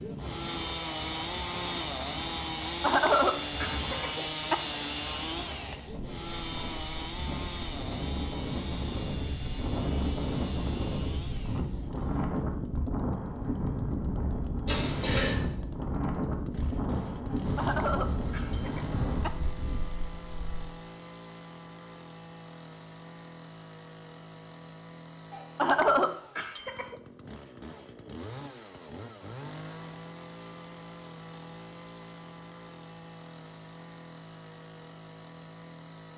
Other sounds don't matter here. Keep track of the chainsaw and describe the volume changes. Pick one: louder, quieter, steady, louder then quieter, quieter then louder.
quieter.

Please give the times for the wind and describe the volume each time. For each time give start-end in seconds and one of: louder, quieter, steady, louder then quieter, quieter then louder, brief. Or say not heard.
0.2-20.8 louder.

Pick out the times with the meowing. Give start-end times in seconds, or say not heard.
not heard.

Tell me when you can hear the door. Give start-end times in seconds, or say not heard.
14.7-15.3.